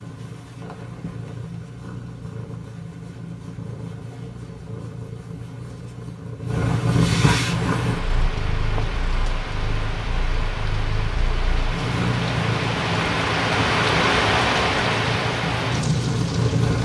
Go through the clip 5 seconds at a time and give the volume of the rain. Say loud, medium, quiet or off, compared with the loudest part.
off, medium, loud, loud.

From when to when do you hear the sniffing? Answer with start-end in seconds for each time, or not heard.
not heard.